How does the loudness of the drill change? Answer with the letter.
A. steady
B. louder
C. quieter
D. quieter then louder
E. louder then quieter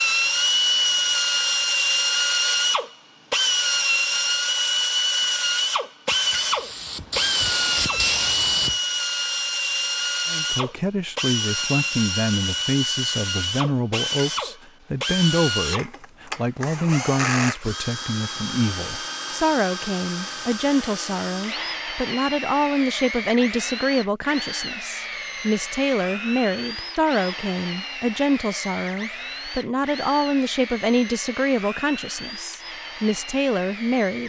C.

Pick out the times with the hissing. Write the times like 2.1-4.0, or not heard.
6.0-8.8.